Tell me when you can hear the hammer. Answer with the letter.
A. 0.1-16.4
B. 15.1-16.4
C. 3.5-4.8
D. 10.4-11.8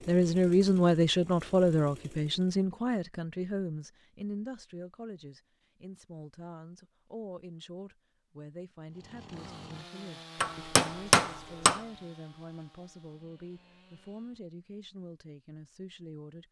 D.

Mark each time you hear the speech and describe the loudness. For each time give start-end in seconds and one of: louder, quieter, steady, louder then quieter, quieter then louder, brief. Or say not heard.
0.1-16.4 quieter.